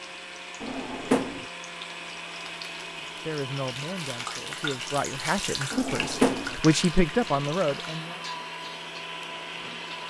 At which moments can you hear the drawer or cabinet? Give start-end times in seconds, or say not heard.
0.6-1.4, 5.7-6.5.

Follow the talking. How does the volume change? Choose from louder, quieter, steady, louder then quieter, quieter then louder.
louder.